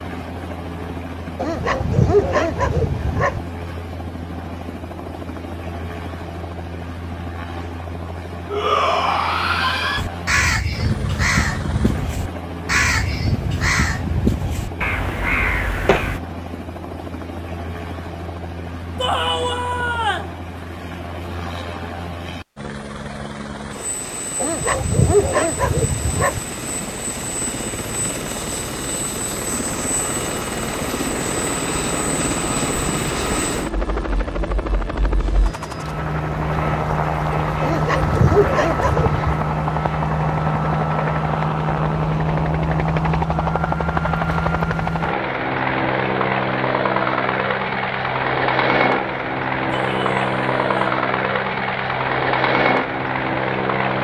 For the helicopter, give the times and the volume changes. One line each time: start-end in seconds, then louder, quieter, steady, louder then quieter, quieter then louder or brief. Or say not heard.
0.0-53.9 louder.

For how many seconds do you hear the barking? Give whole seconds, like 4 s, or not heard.
6 s.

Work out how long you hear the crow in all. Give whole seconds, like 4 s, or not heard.
6 s.